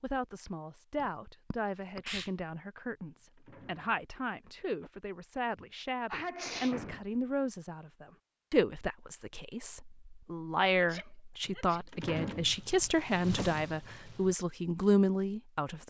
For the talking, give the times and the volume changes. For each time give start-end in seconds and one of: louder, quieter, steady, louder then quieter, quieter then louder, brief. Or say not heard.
0.0-15.8 louder.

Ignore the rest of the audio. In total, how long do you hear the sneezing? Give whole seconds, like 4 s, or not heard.
4 s.